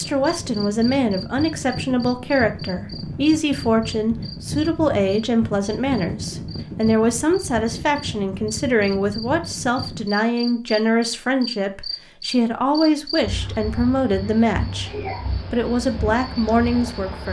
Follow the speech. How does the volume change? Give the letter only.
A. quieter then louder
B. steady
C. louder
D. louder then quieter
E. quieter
B.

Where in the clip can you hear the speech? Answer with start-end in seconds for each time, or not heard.
0.0-17.2.